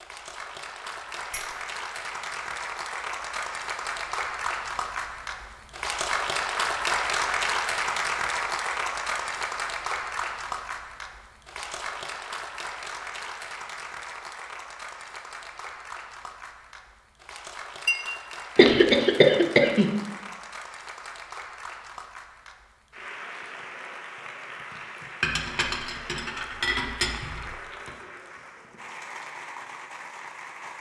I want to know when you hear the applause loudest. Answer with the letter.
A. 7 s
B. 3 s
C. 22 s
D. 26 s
A.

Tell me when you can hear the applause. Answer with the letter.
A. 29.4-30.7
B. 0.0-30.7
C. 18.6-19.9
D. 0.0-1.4
B.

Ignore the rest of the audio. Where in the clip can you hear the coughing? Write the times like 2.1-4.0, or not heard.
18.6-19.9.